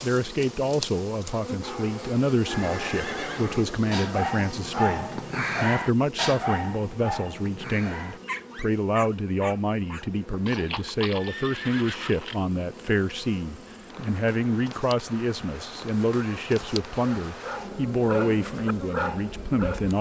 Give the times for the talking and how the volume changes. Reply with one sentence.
You can hear the talking from 0.0 to 19.9 s, at a steady volume.